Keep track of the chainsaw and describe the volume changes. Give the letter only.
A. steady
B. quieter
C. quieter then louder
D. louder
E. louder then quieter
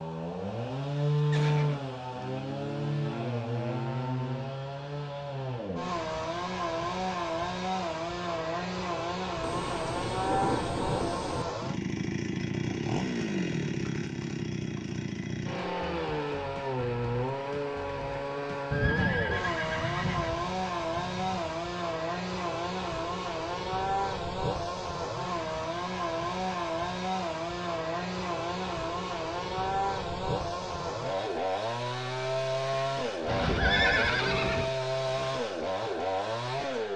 A.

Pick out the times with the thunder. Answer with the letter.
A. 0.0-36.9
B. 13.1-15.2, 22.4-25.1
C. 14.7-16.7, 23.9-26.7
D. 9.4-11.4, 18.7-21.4
D.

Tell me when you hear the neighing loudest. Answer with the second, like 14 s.
34 s.